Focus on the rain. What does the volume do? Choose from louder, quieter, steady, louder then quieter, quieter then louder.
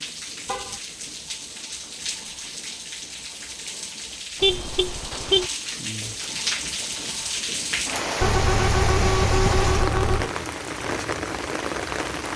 louder.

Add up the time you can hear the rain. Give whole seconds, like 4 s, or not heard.
12 s.